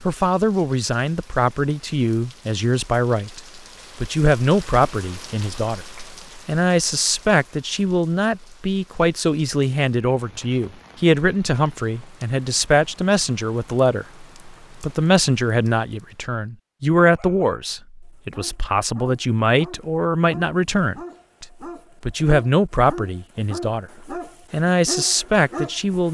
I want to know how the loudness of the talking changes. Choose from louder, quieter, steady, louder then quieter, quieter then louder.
steady.